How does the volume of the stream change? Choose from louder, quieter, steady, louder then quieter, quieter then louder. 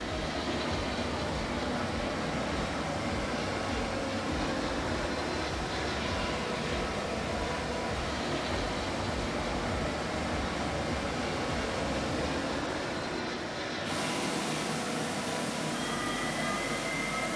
steady.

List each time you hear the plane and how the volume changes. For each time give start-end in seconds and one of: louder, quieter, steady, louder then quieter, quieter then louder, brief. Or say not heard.
0.0-17.3 steady.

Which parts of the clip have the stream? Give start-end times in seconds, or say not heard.
0.0-17.3.